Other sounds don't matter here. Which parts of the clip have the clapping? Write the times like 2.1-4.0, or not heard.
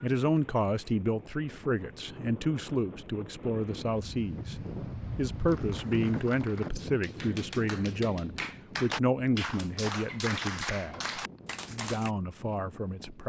5.5-12.1.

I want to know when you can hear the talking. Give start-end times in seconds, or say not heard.
0.0-13.2.